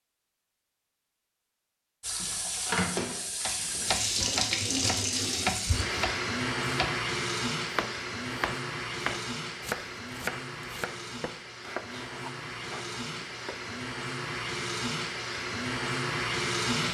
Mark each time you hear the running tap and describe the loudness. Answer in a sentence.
You can hear the running tap from 2.0 to 16.9 s, getting quieter then louder.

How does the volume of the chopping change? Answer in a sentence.
The volume of the chopping goes down.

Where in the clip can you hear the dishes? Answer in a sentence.
You can't hear the dishes here.